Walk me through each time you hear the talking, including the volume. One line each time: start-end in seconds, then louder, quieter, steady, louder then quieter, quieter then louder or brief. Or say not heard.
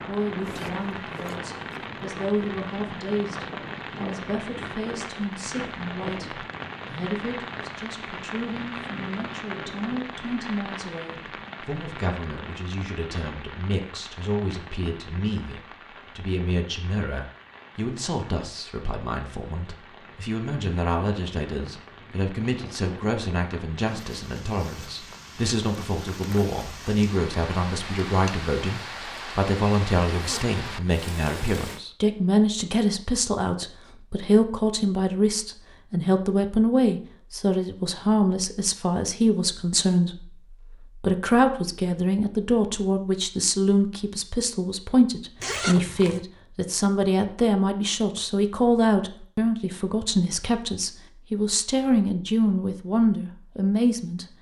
0.1-54.2 louder.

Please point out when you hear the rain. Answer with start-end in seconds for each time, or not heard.
0.0-31.8.